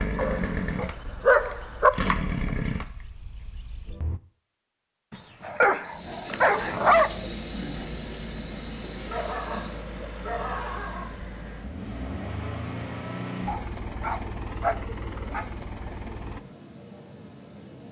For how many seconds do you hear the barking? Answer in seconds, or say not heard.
8 s.